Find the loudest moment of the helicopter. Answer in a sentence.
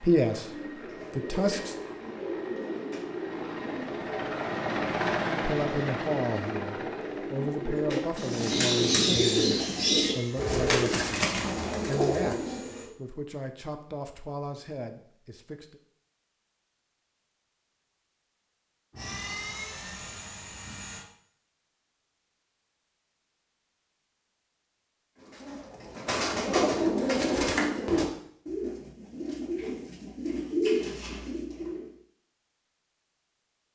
The loudest moment of the helicopter is at 5 seconds.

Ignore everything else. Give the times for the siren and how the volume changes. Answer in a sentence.
The siren can't be heard in this clip.